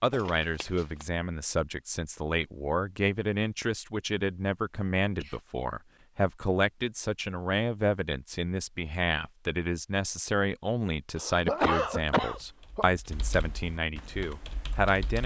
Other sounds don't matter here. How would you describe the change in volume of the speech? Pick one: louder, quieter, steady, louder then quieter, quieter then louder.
steady.